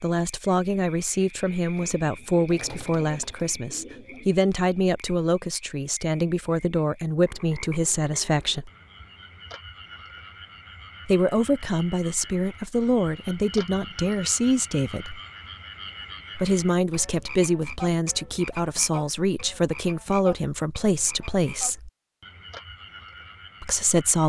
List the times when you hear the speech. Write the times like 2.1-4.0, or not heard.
0.0-8.7, 11.1-15.2, 16.4-21.9, 23.6-24.2.